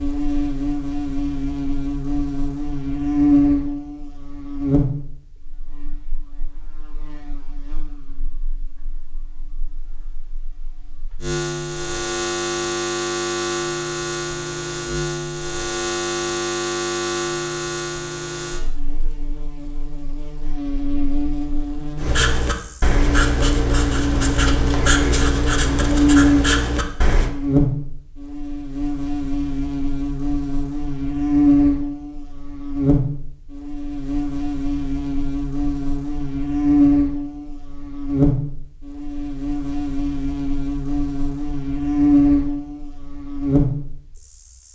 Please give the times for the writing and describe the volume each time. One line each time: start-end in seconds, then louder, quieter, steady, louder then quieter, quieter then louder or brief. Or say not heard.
21.9-27.3 steady.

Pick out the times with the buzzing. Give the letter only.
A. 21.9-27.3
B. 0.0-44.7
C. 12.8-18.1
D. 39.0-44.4
B.